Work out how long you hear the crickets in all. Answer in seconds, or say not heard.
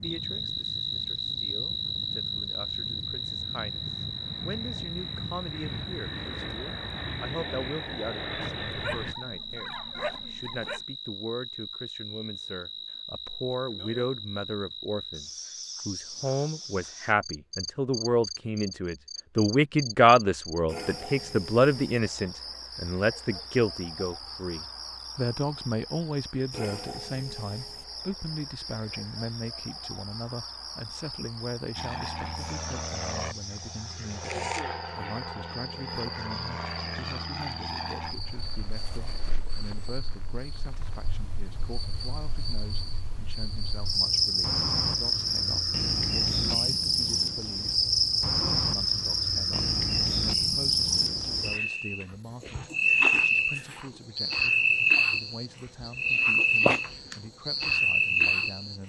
59 s.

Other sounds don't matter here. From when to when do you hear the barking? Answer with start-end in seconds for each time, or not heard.
8.4-10.8.